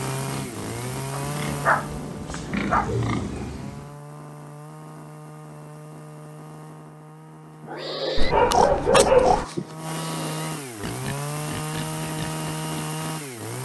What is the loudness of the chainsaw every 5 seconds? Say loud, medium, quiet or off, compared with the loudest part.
loud, medium, loud.